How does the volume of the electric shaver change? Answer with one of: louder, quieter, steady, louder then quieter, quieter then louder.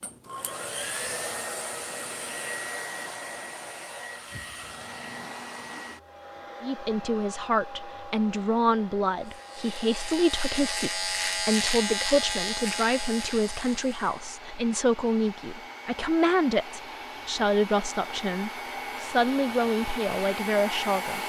louder then quieter.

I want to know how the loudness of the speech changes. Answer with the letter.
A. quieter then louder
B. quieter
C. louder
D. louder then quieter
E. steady
E.